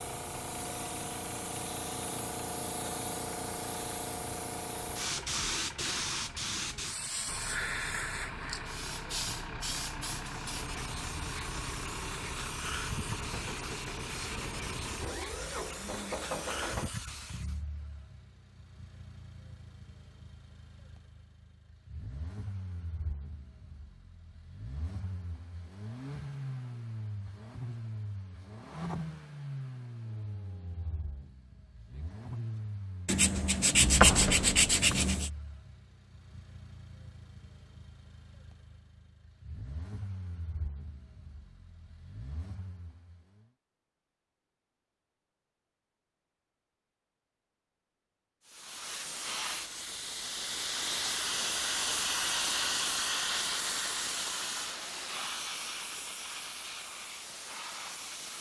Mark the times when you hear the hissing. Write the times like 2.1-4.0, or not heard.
0.0-17.6, 48.5-58.3.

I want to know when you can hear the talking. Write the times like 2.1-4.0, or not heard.
not heard.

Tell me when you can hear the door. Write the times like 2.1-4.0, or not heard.
33.7-35.0.